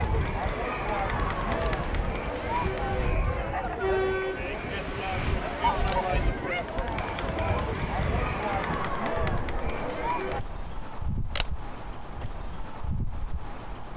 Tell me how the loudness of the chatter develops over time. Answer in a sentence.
The loudness of the chatter stays about the same.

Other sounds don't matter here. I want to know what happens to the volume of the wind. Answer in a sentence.
The volume of the wind stays about the same.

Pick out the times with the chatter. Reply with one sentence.
The chatter can be heard from 0.0 to 10.4 s.